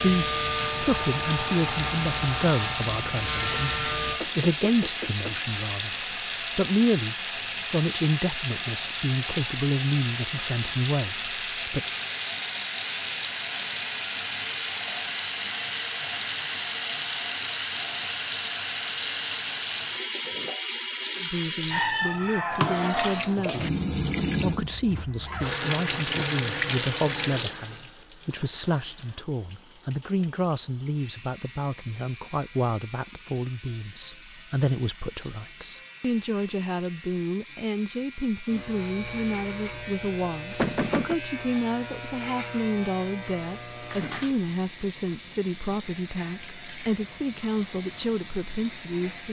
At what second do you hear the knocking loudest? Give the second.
41 s.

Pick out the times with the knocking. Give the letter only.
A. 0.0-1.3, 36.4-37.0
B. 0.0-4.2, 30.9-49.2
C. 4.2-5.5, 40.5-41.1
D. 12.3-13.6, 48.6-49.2
C.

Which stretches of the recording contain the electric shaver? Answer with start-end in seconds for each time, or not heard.
0.0-4.2, 30.9-49.2.